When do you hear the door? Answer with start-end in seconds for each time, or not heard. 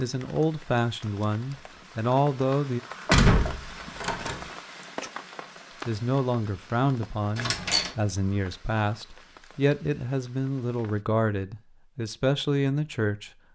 3.0-4.5, 7.3-8.0.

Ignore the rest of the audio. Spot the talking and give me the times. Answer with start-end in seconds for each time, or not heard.
0.0-2.8, 5.8-13.3.